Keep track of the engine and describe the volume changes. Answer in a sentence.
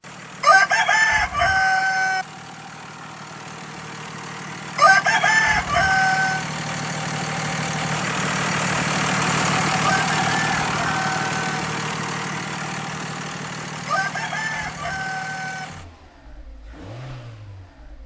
The volume of the engine goes up, then down.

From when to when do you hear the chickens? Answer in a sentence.
You can hear the chickens from 0.4 to 2.2 s, from 4.8 to 6.5 s, from 9.9 to 11.6 s and from 13.8 to 15.7 s.